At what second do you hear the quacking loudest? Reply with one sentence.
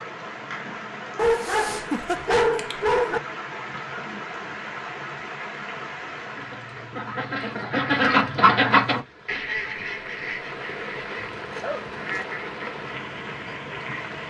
The loudest moment of the quacking is at 9 seconds.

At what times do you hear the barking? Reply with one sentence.
The barking can be heard from 1.1 to 3.2 s and from 11.2 to 12.2 s.